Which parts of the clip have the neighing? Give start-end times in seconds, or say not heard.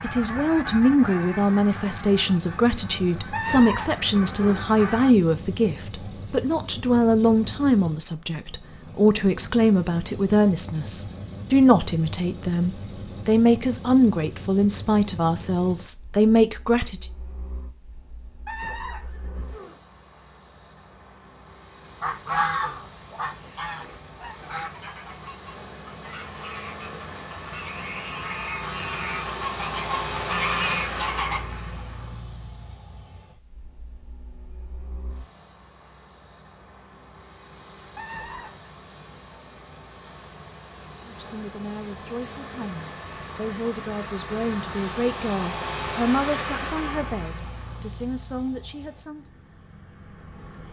3.3-4.5, 18.4-19.8, 38.0-38.7.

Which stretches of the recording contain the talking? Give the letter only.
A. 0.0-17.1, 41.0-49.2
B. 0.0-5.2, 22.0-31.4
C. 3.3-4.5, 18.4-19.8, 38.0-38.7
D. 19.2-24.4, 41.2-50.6
A.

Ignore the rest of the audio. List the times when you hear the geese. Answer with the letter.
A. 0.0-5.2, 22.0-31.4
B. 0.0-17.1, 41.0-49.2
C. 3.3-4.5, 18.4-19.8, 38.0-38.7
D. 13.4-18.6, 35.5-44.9
A.